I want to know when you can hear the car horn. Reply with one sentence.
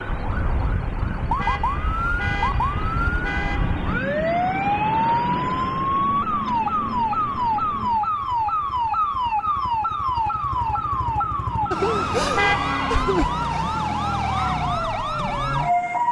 The car horn can be heard from 1.4 to 3.9 s and from 12.3 to 13.1 s.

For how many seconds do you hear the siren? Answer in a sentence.
You can hear the siren for 16 seconds altogether.